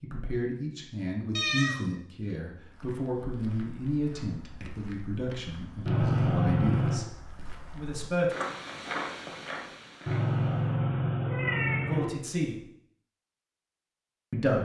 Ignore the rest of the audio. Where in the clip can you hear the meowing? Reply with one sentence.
The meowing can be heard from 1.4 to 1.9 s, from 5.8 to 7.0 s and from 10.1 to 12.1 s.